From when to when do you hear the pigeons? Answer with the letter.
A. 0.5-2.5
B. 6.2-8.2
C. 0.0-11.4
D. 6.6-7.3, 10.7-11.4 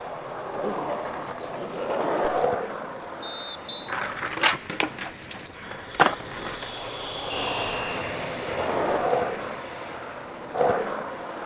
A.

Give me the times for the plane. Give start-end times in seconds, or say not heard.
0.0-11.4.